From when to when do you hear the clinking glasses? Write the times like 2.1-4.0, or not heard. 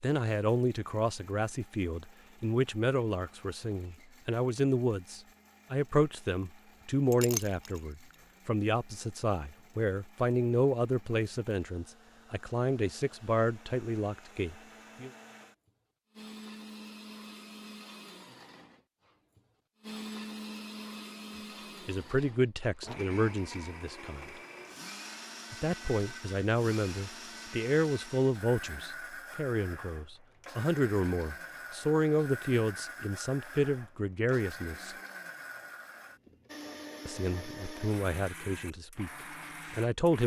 7.1-7.8.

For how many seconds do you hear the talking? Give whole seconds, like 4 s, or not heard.
30 s.